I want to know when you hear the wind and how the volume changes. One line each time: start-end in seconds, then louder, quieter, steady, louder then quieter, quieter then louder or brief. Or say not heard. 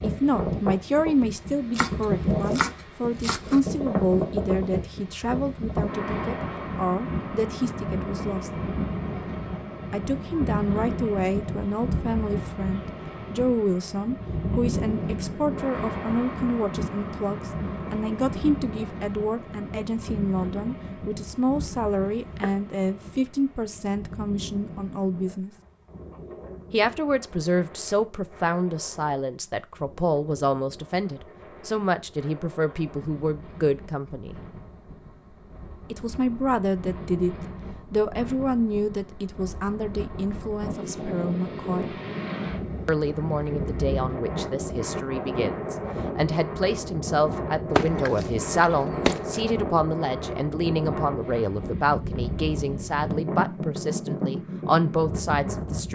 0.0-55.9 quieter then louder.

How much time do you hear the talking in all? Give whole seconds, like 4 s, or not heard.
51 s.